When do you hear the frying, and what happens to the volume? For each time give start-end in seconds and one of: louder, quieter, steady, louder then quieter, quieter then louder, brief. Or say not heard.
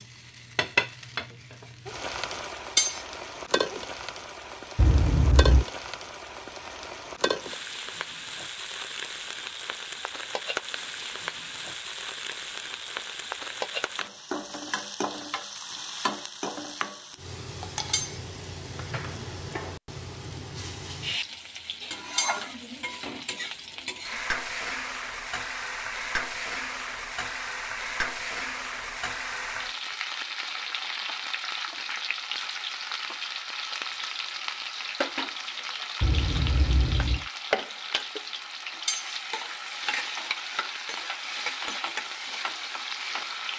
0.0-43.5 steady.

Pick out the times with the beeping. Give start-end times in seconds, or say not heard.
4.8-5.7, 36.0-37.2.